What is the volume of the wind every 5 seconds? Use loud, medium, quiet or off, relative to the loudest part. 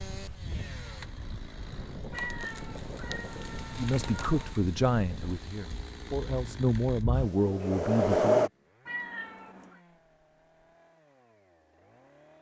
quiet, loud, off.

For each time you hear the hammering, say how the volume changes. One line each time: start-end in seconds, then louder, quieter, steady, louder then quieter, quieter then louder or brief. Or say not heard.
not heard.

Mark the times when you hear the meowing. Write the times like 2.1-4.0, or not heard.
2.1-4.6, 8.8-9.8.